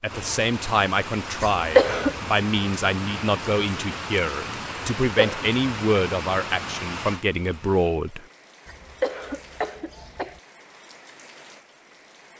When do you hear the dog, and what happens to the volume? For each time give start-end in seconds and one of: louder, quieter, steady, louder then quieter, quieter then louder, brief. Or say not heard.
not heard.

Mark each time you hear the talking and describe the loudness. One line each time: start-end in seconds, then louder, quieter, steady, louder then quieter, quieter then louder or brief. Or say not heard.
0.0-8.2 steady.